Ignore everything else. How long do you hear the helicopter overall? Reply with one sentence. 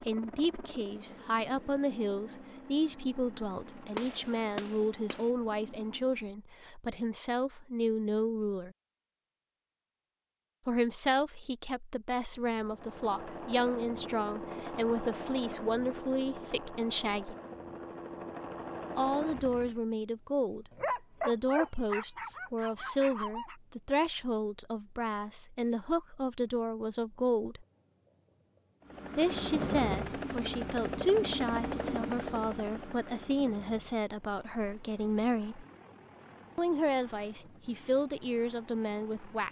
The helicopter can be heard for 24 seconds in total.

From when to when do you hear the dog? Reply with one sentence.
The dog can be heard from 20.7 to 23.6 s.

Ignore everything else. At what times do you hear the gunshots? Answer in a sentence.
The gunshots can be heard from 4.0 to 5.3 s.